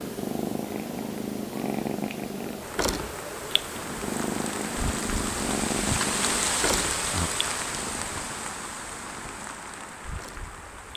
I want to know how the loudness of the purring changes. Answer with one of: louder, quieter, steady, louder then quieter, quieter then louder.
quieter.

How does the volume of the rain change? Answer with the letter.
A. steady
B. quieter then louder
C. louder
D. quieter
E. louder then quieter
E.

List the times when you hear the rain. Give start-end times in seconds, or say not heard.
2.6-10.9.